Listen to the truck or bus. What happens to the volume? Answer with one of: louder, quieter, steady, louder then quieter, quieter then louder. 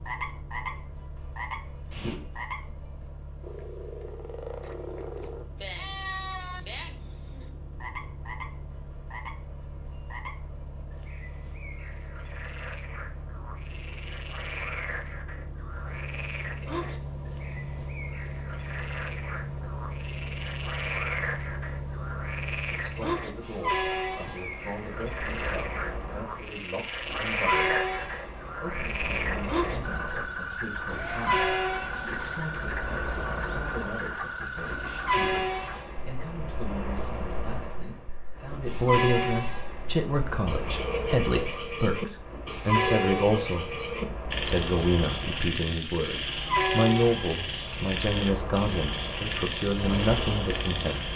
louder.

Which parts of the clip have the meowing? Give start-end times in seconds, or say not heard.
1.9-2.7.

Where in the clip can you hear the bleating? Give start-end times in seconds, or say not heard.
4.6-6.6, 30.9-32.5.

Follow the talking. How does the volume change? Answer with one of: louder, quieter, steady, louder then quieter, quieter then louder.
louder.